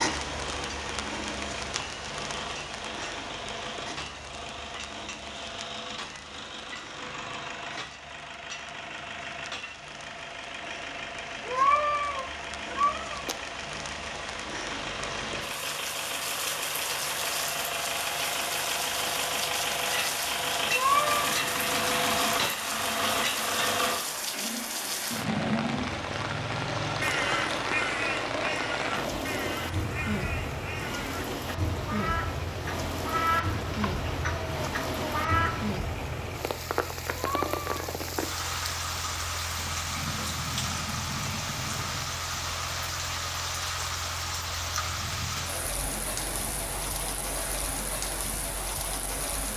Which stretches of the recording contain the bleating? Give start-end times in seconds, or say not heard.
not heard.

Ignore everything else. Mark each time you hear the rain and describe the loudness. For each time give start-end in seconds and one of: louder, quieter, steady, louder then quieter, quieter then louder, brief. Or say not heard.
0.0-49.5 louder.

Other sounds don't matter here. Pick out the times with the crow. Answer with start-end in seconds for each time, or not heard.
27.0-35.8.